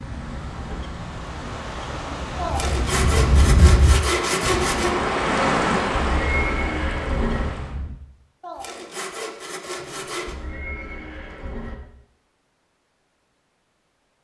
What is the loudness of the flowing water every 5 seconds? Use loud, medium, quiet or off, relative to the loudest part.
medium, loud, off.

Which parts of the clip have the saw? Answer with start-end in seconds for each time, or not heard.
2.4-5.0, 8.4-10.3.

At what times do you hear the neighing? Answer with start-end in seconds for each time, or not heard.
0.2-0.9, 5.5-7.5, 9.8-11.8.